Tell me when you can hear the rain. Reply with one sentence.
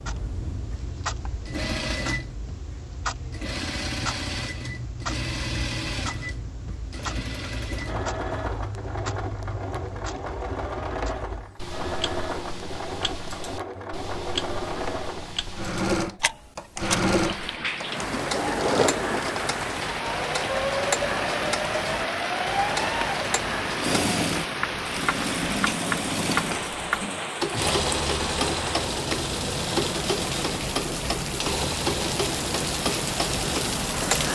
You can hear the rain from 16.8 to 34.3 s.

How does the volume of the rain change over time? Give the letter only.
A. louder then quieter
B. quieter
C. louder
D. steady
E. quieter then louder
D.